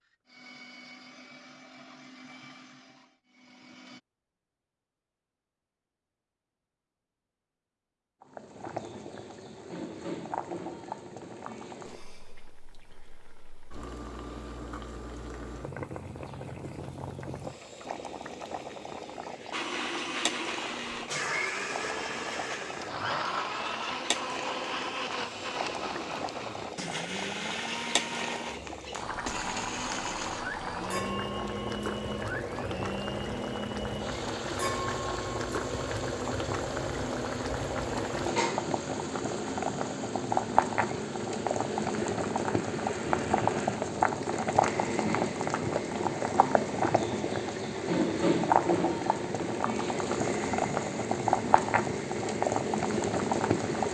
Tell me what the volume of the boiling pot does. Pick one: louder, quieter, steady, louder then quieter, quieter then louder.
louder.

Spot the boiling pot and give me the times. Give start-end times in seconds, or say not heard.
8.2-53.8.